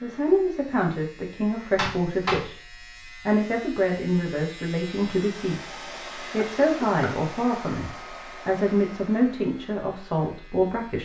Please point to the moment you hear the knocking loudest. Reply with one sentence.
The volume of the knocking peaks at 2 seconds.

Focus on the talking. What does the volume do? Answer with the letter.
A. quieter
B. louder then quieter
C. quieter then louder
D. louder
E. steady
E.